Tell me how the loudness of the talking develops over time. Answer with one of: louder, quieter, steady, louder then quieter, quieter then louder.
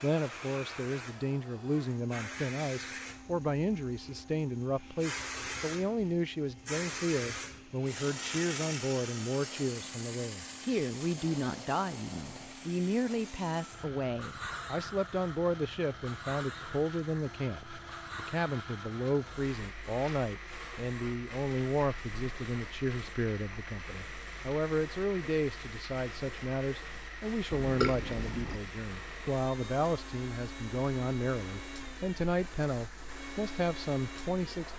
steady.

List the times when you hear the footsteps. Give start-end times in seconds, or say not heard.
not heard.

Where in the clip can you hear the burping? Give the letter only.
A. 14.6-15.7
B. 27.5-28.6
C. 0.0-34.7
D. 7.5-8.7
B.